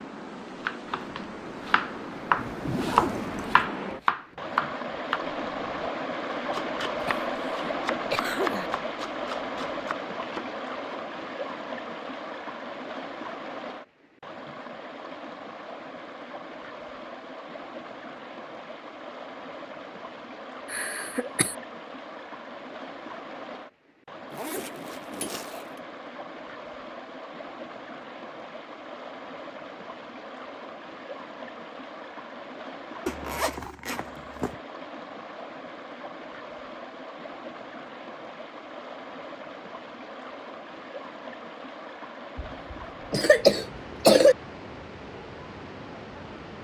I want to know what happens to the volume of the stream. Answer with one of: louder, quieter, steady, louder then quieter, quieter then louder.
quieter.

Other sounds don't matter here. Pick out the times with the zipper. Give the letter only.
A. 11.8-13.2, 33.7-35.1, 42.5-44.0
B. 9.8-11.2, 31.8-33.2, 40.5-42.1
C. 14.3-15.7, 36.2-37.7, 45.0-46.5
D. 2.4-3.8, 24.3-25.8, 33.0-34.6
D.